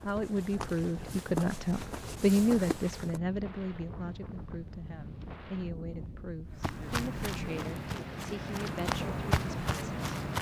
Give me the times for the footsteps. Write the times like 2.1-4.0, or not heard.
0.0-3.2, 6.5-10.3.